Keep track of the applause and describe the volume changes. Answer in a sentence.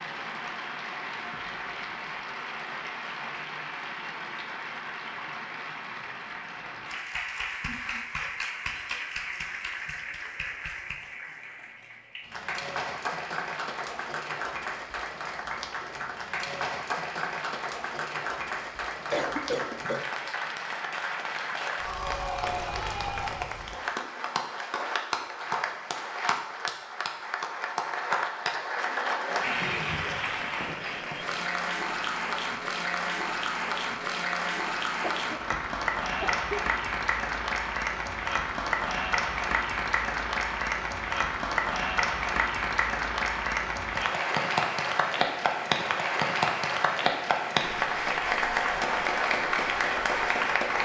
The volume of the applause goes up.